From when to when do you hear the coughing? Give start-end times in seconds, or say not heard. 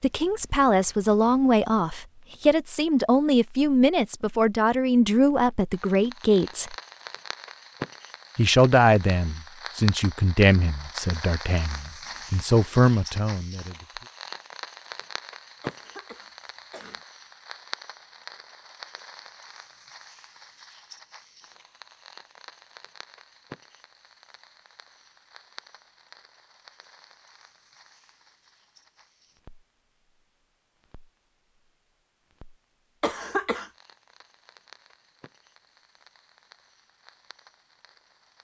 15.6-17.1, 33.0-33.7.